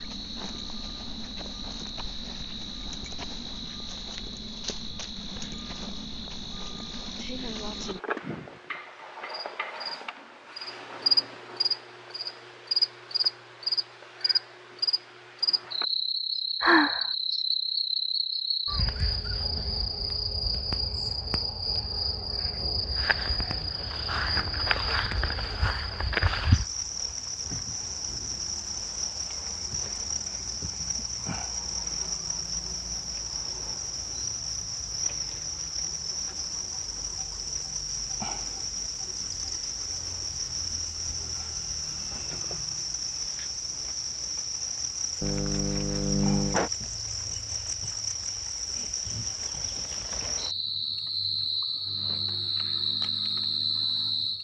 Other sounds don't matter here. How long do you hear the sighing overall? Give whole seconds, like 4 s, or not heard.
2 s.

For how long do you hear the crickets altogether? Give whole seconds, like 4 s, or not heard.
54 s.